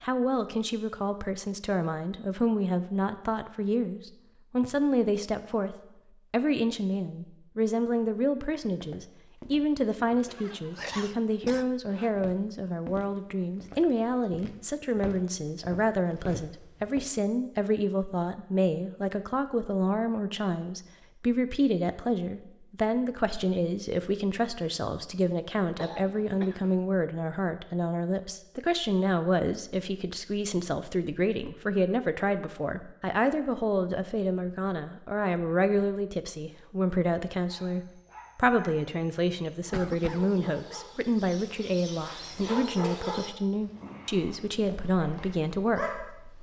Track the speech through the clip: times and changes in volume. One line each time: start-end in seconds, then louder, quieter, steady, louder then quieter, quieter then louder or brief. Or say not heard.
0.0-46.3 steady.